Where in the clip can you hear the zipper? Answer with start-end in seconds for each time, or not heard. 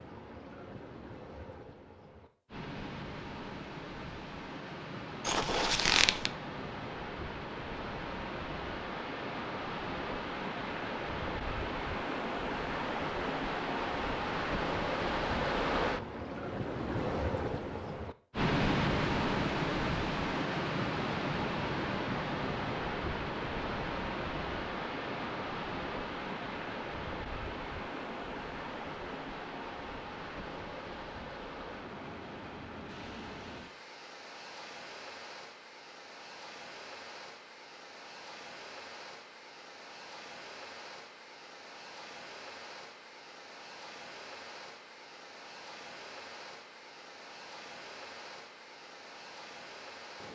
5.2-6.3.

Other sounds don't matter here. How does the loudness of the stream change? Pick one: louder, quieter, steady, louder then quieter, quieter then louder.
louder then quieter.